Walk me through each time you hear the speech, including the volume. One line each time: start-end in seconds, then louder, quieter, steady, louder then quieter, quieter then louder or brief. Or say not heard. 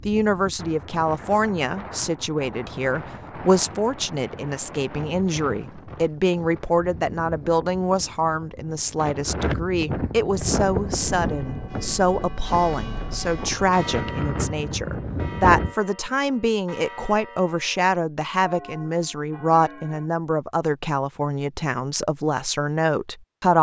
0.1-23.5 steady.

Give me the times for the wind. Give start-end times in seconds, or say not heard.
0.0-15.8.